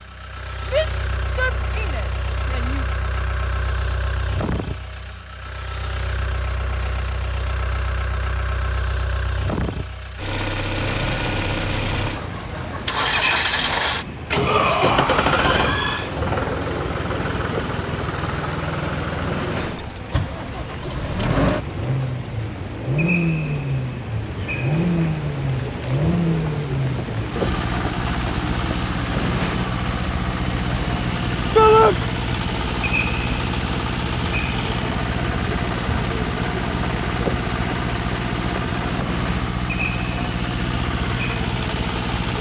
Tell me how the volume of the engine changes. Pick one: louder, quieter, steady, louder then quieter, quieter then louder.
louder.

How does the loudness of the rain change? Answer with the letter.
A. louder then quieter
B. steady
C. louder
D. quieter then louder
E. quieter
B.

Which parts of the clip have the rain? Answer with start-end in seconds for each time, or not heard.
10.7-42.3.